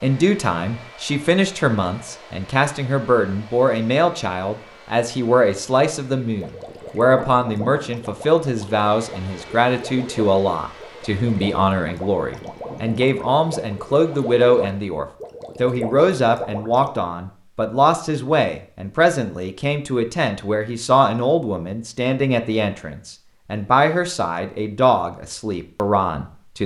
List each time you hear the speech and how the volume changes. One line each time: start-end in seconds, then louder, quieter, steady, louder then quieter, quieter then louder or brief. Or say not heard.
0.0-26.6 steady.